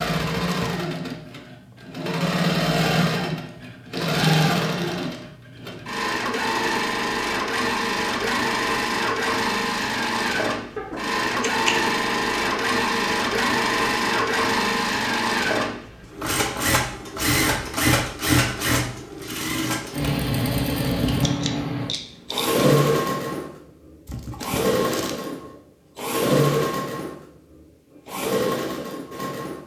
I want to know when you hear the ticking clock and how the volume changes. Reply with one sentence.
The ticking clock can't be heard in this clip.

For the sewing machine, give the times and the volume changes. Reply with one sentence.
The sewing machine can be heard from 0.0 to 29.6 s, at a steady volume.